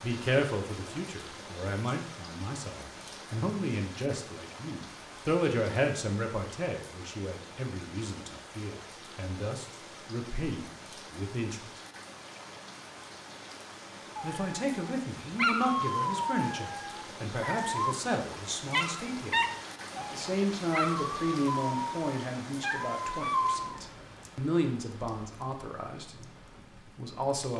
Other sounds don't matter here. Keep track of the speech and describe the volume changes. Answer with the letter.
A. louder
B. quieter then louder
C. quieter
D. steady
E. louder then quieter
D.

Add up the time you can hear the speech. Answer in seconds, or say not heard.
25 s.